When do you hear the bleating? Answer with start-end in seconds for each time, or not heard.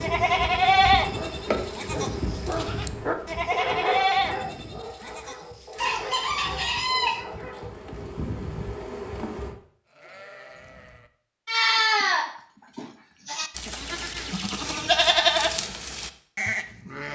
0.0-6.0, 9.9-17.1.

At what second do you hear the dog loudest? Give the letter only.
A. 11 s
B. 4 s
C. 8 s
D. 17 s
B.